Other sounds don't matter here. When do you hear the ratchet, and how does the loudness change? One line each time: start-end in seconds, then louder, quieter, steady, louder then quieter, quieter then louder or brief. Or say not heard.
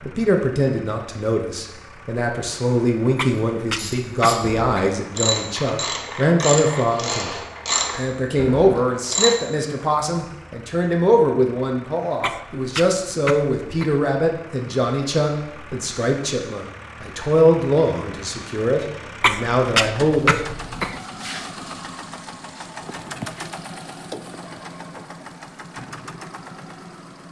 3.4-9.3 louder then quieter.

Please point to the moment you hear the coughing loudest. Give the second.
20 s.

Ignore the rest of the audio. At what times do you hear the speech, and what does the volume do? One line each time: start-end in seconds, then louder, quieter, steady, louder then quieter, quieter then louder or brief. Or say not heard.
0.0-20.4 steady.